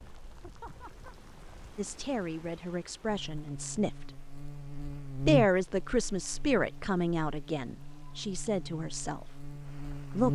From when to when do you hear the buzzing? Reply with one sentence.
You can hear the buzzing from 3.0 to 10.3 s.